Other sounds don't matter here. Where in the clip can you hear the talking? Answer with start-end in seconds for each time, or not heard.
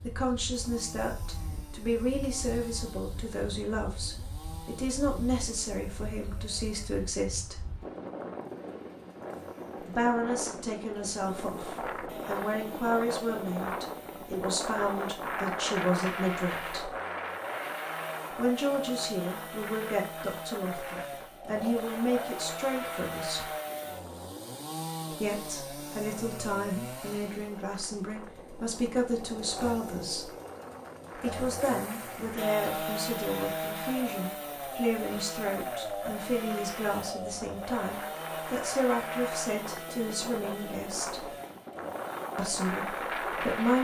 0.0-7.6, 9.8-16.9, 18.4-23.5, 25.1-30.3, 31.1-41.3, 42.4-43.7.